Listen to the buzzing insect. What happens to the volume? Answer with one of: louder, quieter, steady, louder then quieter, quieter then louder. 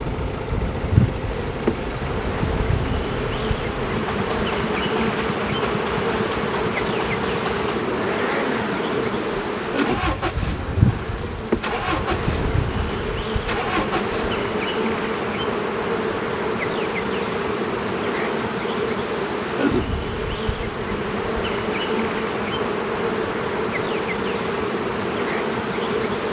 steady.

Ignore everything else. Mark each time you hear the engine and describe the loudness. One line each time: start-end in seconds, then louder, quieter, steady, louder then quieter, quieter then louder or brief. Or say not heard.
0.0-14.4 steady.